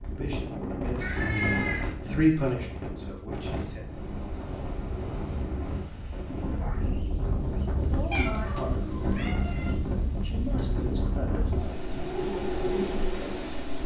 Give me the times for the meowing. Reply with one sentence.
The meowing can be heard from 1.0 to 1.9 s and from 8.1 to 9.7 s.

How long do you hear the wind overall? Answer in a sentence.
You can hear the wind for 14 seconds altogether.